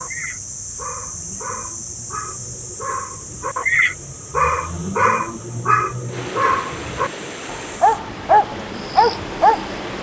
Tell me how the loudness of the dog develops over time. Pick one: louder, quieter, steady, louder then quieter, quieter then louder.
louder.